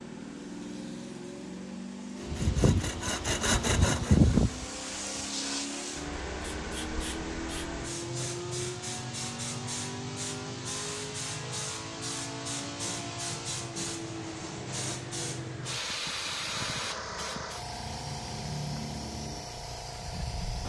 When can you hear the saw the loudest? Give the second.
4 s.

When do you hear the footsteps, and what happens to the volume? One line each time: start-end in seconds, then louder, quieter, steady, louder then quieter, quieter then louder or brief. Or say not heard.
not heard.